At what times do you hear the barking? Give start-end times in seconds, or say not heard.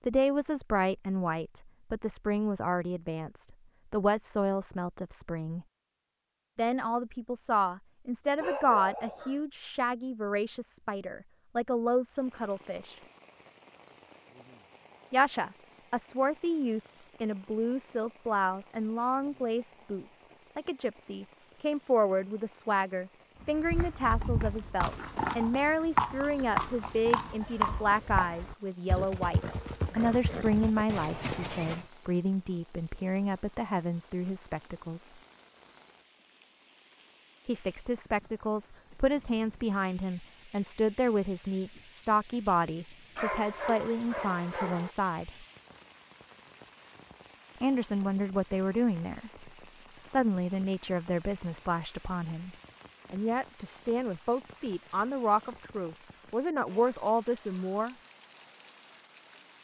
8.4-9.4, 43.1-44.9.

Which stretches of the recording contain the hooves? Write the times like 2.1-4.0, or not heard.
23.4-31.9.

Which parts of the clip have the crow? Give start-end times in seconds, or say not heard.
not heard.